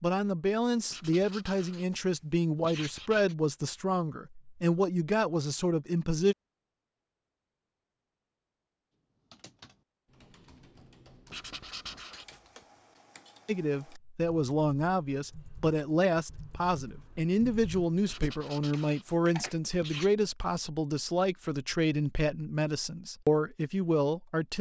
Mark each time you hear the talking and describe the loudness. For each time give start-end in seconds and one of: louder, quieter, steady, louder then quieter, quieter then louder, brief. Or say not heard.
0.0-6.3 steady
13.4-24.5 steady.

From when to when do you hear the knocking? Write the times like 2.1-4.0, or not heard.
not heard.